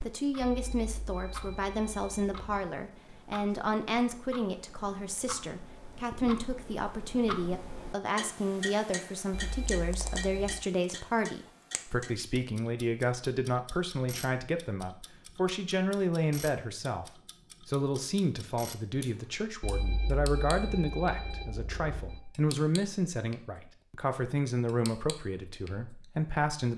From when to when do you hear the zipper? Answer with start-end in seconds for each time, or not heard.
not heard.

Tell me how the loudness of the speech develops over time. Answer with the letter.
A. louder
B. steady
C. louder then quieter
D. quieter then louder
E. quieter
B.